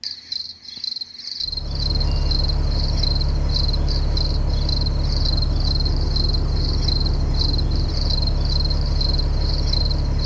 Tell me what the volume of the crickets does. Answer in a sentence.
The volume of the crickets stays about the same.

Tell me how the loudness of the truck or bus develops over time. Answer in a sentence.
The loudness of the truck or bus stays about the same.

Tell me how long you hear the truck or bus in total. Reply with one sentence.
You can hear the truck or bus for 9 seconds altogether.